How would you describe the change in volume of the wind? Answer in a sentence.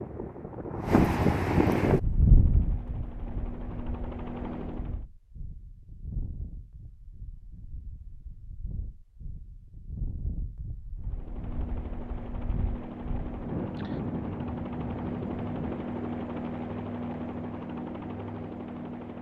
The volume of the wind goes down, then up.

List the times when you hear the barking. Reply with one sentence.
The barking can't be heard in this clip.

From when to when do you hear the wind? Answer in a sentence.
You can hear the wind from 0.0 to 16.0 s.